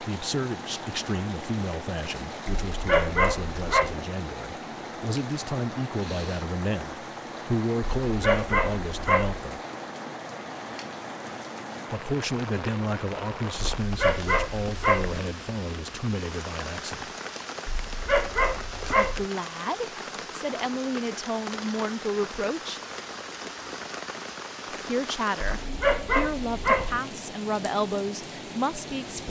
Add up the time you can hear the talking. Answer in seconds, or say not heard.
23 s.